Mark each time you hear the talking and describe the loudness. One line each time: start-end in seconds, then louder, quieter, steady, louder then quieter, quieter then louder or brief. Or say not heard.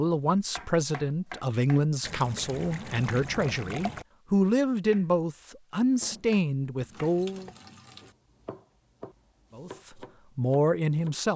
0.0-7.5 steady
9.6-11.3 brief.